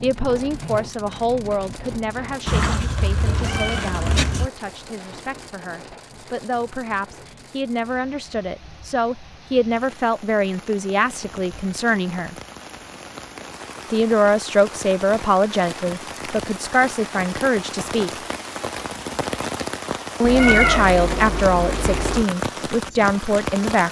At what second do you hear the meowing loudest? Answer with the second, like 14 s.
21 s.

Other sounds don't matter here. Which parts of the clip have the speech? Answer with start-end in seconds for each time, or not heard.
0.0-12.3, 13.9-18.2, 20.2-23.8.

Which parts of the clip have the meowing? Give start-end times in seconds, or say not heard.
2.5-4.5, 20.2-22.2.